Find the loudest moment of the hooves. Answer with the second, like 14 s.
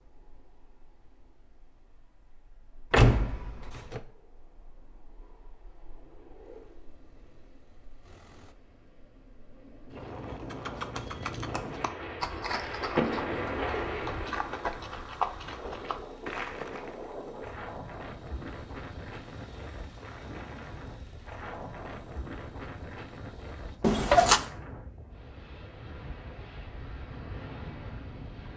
15 s.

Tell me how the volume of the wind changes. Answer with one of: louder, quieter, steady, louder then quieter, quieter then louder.
louder then quieter.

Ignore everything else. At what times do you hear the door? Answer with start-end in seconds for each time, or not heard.
2.9-4.0, 12.9-13.5, 23.8-24.4.